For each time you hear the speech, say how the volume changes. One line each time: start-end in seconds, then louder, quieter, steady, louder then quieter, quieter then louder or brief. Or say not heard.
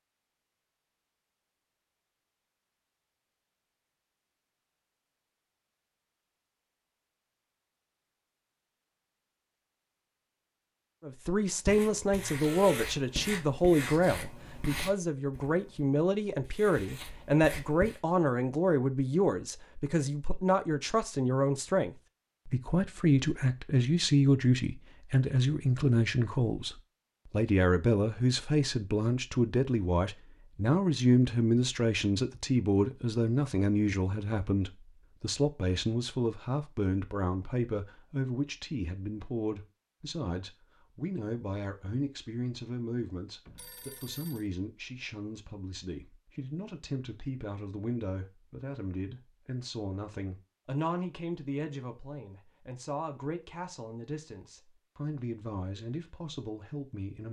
11.0-57.2 quieter.